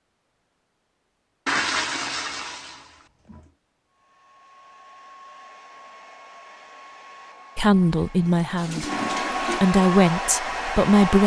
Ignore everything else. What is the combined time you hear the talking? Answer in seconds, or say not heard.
4 s.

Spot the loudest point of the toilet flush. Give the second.
2 s.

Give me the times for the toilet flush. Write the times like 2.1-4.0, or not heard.
1.4-3.4, 8.2-9.7.